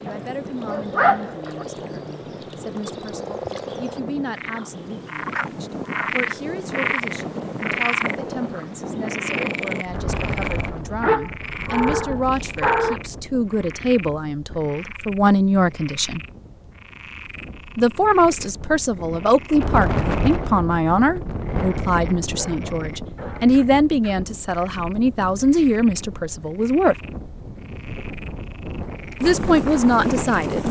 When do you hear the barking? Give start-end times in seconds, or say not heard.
0.1-1.6, 11.0-13.0, 21.6-23.5.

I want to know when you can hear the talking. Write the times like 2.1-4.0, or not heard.
0.0-16.2, 17.8-26.9, 29.2-30.6.